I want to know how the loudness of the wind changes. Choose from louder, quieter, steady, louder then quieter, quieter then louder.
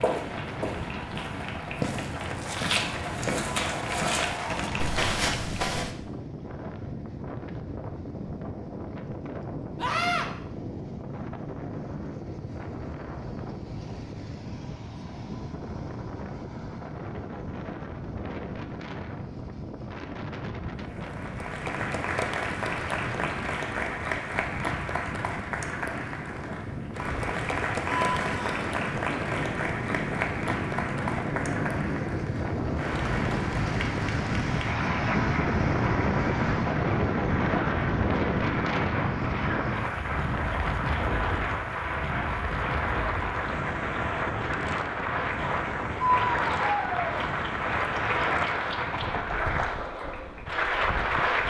louder then quieter.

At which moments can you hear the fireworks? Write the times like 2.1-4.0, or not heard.
not heard.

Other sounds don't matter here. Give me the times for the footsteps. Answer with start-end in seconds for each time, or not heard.
0.0-6.0.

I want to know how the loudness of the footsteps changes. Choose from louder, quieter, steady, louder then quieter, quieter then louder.
louder.